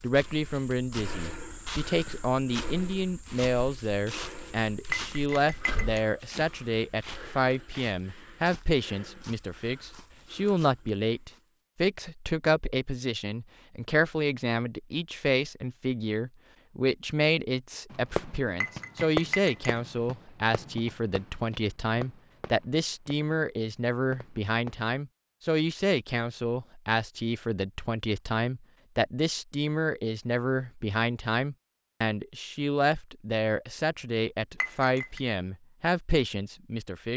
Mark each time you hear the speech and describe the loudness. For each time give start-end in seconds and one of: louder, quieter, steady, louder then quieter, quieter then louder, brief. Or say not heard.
0.0-37.1 steady.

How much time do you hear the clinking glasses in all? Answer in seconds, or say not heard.
3 s.